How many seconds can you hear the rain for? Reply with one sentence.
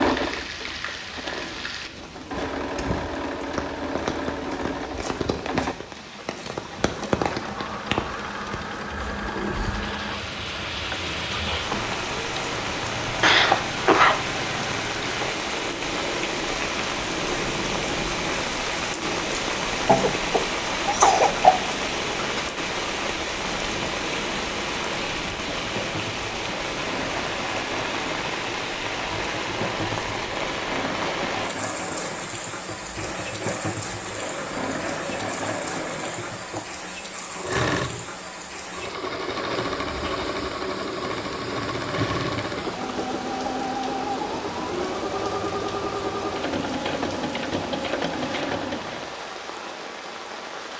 You can hear the rain for 51 seconds altogether.